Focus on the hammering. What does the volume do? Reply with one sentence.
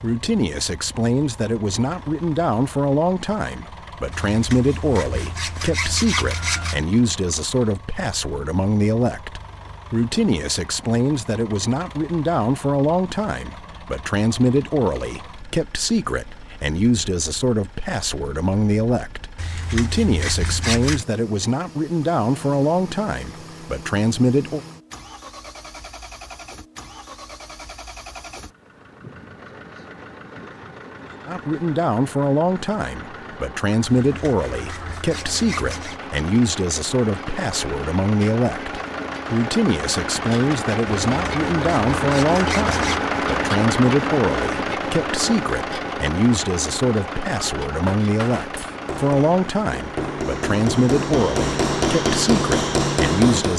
The loudness of the hammering goes up.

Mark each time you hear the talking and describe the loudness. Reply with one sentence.
You can hear the talking from 0.0 to 24.6 s, at a steady volume; and from 31.2 to 53.5 s, at a steady volume.